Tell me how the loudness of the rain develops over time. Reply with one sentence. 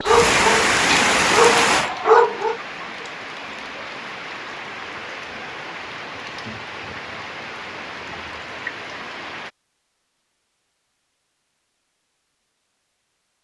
The volume of the rain goes down.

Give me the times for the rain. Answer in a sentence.
The rain can be heard from 0.0 to 9.5 s.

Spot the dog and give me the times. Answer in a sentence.
You can hear the dog from 0.0 to 2.5 s.